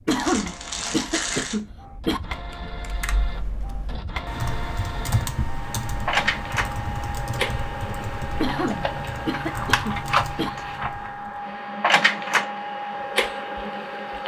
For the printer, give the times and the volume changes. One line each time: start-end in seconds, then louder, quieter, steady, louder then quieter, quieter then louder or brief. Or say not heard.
0.0-14.2 louder.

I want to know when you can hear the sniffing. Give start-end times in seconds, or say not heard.
0.1-2.2, 8.4-10.5.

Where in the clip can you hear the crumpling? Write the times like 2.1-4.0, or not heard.
0.1-1.6.